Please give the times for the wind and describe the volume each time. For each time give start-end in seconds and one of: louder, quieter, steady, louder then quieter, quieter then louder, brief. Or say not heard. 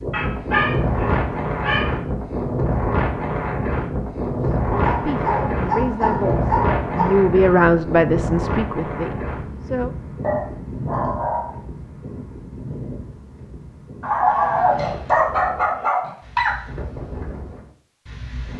0.0-18.5 quieter.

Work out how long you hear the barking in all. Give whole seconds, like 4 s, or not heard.
8 s.